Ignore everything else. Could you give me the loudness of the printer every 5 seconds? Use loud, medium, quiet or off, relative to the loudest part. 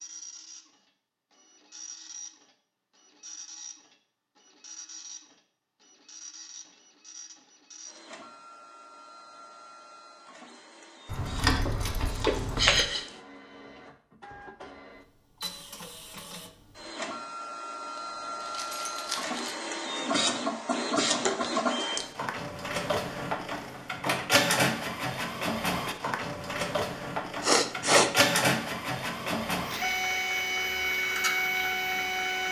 quiet, quiet, quiet, medium, loud, loud, loud.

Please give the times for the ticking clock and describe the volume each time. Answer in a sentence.
You can't hear the ticking clock here.